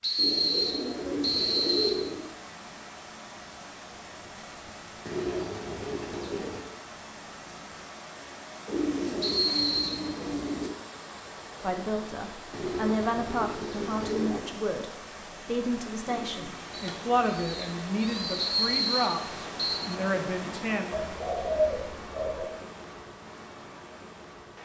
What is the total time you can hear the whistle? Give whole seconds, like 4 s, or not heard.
4 s.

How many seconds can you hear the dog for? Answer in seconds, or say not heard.
not heard.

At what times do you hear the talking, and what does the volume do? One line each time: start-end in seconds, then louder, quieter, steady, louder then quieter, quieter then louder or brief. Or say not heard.
11.6-20.9 steady.